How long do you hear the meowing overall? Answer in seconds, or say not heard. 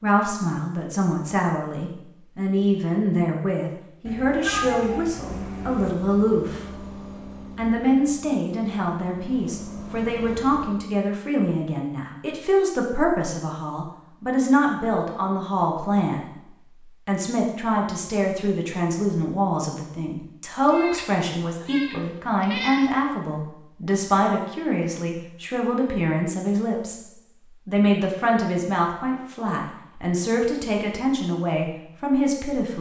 4 s.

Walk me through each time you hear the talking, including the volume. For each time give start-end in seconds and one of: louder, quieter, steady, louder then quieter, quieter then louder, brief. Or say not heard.
0.0-6.8 steady
7.5-32.7 steady.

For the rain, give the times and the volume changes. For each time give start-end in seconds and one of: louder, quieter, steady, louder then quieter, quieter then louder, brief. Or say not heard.
not heard.